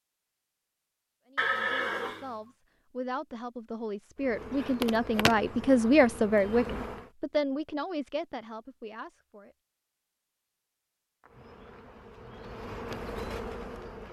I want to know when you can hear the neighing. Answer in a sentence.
The neighing can be heard from 1.4 to 2.3 s.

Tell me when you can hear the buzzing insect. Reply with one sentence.
You can hear the buzzing insect from 4.2 to 7.1 s and from 11.2 to 14.0 s.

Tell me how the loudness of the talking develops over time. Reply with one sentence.
The volume of the talking goes up, then down.